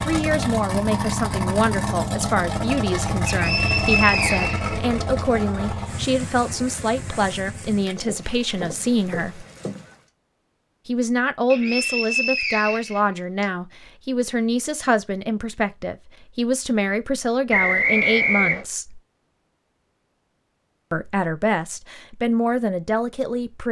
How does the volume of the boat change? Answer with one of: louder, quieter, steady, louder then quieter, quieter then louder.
quieter.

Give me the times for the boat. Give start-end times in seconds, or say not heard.
0.0-9.9.